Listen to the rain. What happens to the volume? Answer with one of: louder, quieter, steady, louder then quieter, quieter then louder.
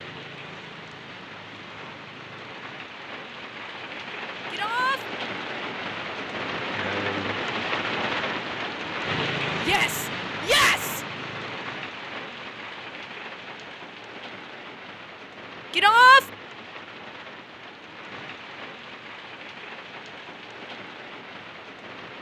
louder then quieter.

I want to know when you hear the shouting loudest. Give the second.
16 s.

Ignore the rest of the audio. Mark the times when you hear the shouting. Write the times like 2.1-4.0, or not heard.
4.5-5.0, 9.6-11.0, 15.8-16.2.